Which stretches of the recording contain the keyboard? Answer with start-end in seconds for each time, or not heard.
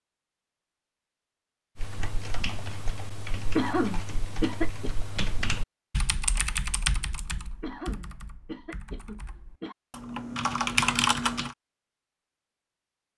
1.8-11.6.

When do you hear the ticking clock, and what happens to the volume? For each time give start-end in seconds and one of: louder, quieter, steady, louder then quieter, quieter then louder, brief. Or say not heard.
not heard.